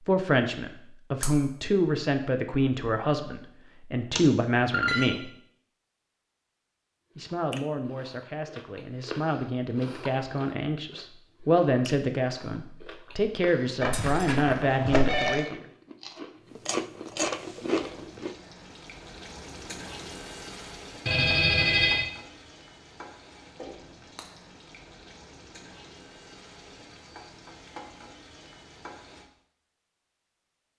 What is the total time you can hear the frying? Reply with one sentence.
The frying can be heard for 12 seconds in total.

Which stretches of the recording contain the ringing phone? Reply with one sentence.
You can hear the ringing phone from 4.2 to 5.1 s, from 13.8 to 15.4 s and from 21.1 to 22.1 s.